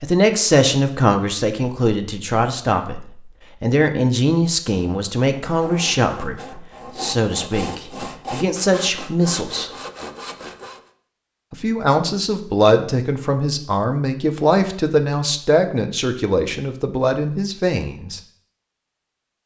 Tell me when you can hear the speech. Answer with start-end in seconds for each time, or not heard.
0.0-3.0, 3.6-9.7, 11.5-18.2.